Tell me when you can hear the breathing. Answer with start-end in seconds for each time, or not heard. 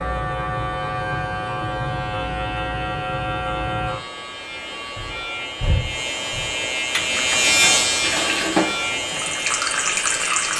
5.0-6.5.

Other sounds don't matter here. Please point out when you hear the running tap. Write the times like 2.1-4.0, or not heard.
6.8-10.5.